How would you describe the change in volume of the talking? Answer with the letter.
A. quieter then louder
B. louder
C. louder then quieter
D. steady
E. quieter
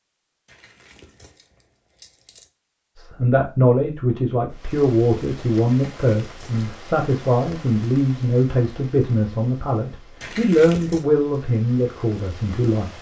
D.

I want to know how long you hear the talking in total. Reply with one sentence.
You can hear the talking for 10 seconds altogether.